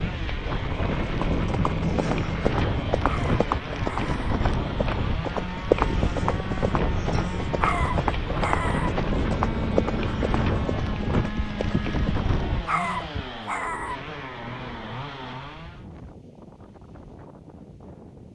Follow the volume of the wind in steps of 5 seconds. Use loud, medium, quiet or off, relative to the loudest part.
loud, loud, loud, quiet.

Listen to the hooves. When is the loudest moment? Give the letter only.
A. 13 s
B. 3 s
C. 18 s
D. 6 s
D.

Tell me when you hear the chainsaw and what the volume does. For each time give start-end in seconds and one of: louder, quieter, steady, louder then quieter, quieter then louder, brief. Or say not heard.
0.0-15.8 steady.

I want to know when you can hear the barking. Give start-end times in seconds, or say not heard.
3.0-4.2, 7.6-8.9, 12.7-14.0.